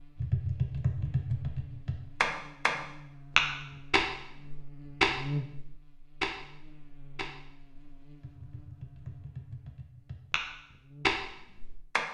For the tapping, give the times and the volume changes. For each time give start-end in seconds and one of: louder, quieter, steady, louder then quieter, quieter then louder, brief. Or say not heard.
0.2-12.1 quieter then louder.